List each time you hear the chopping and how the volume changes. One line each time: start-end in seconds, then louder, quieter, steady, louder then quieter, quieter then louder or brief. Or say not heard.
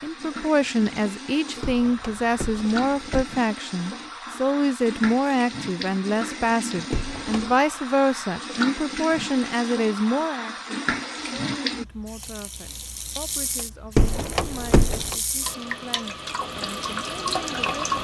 not heard.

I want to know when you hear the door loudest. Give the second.
14 s.